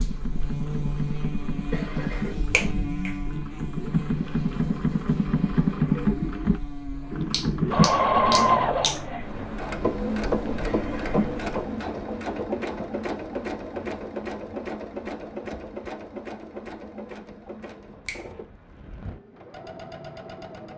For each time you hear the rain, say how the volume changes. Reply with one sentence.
You can't hear the rain here.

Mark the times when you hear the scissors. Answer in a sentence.
You can't hear the scissors here.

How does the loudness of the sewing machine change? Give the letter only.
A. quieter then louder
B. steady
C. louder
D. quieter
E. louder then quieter
E.